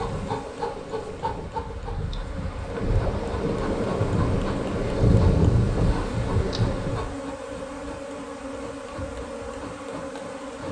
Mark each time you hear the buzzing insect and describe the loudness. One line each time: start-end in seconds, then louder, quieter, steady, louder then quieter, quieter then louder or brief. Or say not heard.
0.0-10.6 steady.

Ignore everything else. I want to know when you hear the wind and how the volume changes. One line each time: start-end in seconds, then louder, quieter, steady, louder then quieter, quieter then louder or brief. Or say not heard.
0.0-7.2 louder.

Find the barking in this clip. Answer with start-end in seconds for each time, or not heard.
not heard.